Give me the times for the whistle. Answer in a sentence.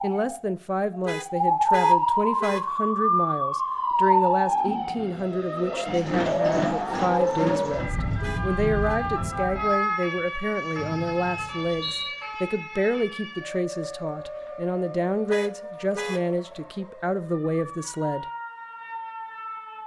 The whistle can be heard from 10.8 to 12.2 s.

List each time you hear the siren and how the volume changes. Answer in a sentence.
The siren can be heard from 0.0 to 19.8 s, getting quieter.